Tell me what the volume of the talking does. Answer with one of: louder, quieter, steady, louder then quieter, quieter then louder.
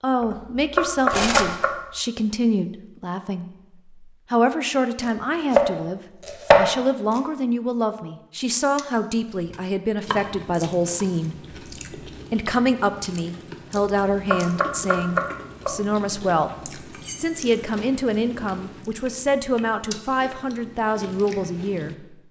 steady.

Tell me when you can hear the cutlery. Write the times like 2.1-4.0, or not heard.
1.1-1.6, 16.9-17.4.